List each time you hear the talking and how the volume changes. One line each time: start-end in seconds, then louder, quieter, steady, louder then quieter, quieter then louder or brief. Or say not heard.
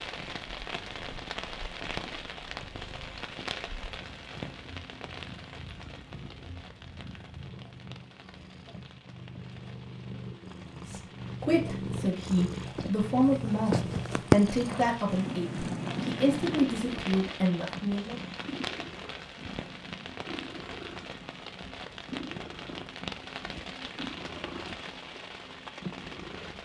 10.8-18.2 steady.